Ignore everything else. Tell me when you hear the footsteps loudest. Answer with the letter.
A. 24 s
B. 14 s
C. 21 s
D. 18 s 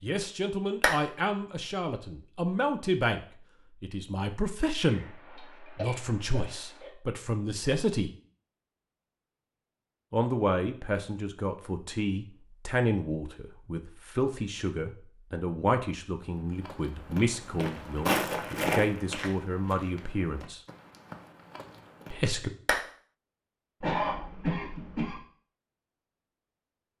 D.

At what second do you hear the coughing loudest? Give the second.
24 s.